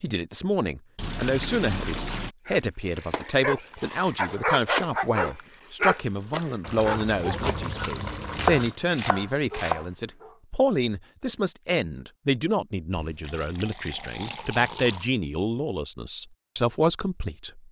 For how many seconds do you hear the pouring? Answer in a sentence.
The pouring can be heard for 6 seconds in total.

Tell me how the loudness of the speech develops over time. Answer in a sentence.
The loudness of the speech stays about the same.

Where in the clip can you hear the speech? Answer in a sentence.
The speech can be heard from 0.0 to 17.6 s.